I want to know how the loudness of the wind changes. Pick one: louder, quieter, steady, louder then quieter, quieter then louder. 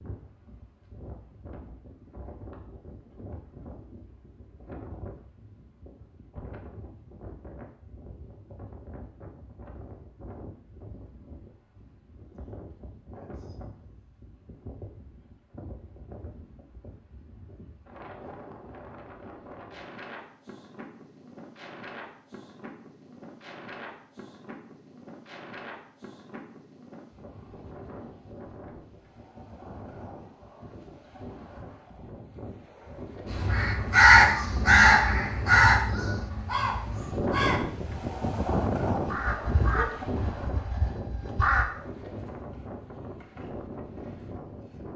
louder.